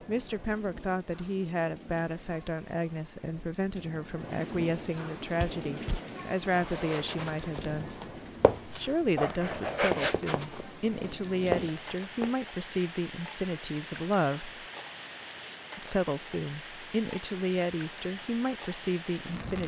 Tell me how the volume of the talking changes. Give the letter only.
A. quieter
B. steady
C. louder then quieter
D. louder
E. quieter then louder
B.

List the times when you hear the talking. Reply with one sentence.
The talking can be heard from 0.1 to 7.9 s, from 8.8 to 14.6 s and from 15.8 to 19.6 s.